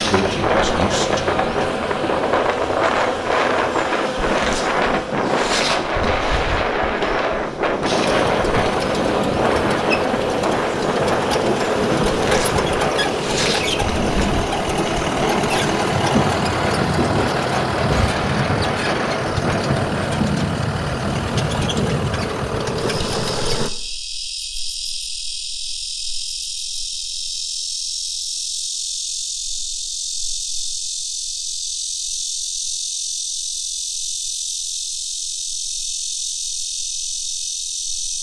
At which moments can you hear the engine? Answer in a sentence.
You can hear the engine from 8.0 to 23.7 s.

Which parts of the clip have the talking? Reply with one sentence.
You can hear the talking from 0.0 to 1.7 s.